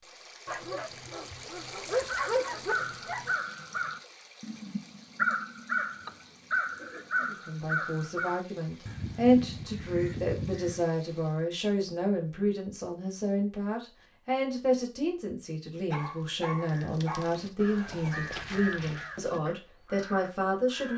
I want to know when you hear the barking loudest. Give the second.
2 s.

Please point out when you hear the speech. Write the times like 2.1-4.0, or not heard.
7.2-20.9.